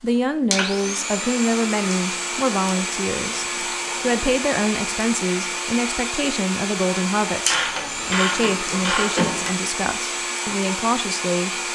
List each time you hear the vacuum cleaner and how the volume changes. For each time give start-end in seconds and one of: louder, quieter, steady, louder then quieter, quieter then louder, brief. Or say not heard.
0.0-11.7 steady.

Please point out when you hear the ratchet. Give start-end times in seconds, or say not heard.
2.8-4.3, 7.5-9.6.